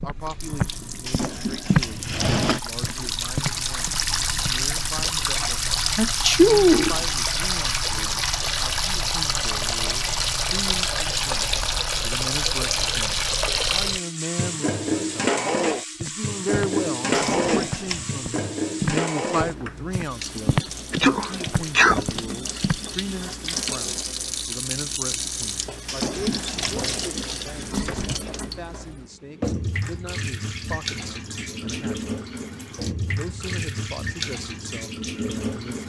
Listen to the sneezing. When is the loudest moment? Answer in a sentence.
The loudest moment of the sneezing is at 7 seconds.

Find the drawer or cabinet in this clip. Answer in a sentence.
The drawer or cabinet can be heard from 1.1 to 2.6 s, from 17.1 to 18.1 s and from 25.9 to 27.0 s.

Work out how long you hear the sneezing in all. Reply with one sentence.
You can hear the sneezing for 3 seconds altogether.